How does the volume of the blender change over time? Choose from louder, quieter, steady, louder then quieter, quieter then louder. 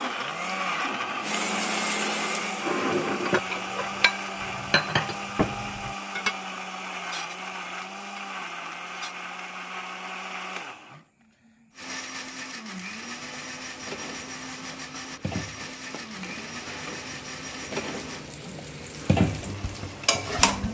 quieter.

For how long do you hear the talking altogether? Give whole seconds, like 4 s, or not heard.
not heard.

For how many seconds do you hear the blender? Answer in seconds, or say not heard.
18 s.